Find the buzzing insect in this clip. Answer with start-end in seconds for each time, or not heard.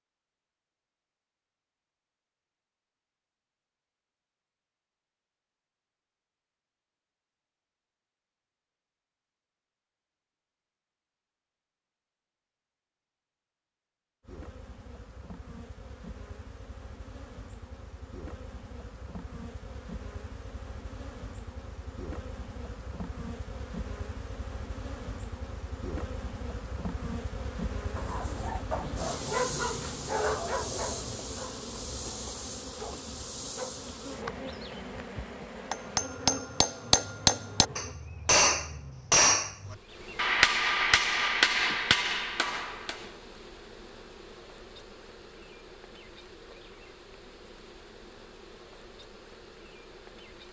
14.2-50.4.